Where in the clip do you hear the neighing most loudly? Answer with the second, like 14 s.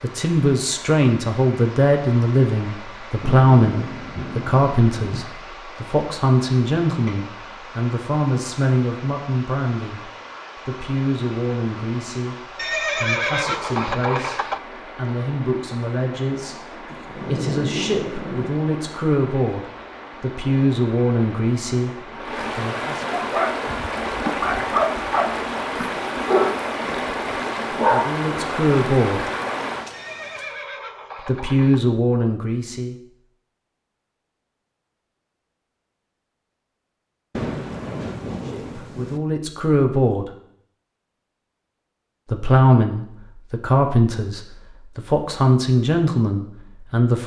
13 s.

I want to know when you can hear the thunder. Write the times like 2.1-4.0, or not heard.
3.2-5.2, 16.9-18.5, 37.3-39.2.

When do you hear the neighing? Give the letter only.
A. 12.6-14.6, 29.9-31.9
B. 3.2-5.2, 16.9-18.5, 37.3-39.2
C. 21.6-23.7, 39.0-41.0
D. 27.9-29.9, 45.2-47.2
A.